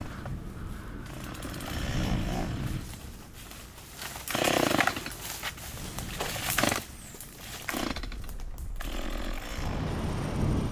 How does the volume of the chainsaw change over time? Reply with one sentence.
The loudness of the chainsaw goes up, then down.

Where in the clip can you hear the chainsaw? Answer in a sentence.
You can hear the chainsaw from 0.0 to 10.6 s.